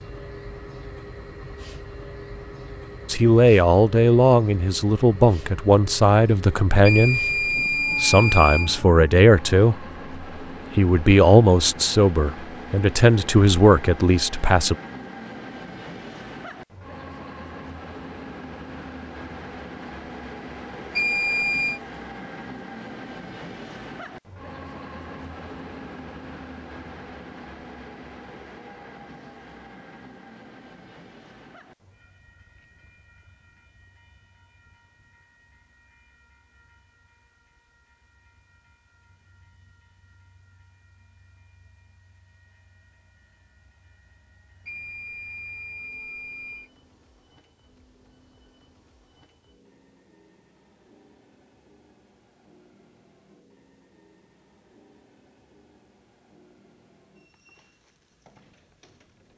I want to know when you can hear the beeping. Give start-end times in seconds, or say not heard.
6.8-8.7, 20.9-21.8, 44.6-46.7.